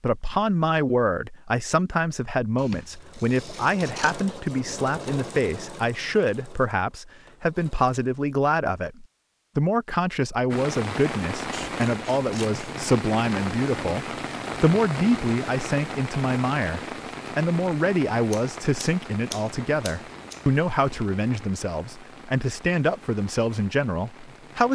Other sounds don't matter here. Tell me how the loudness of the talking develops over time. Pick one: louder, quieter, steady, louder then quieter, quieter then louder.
steady.